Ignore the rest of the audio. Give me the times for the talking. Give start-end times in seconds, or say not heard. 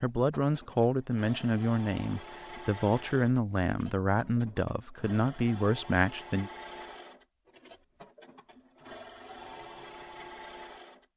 0.0-6.5.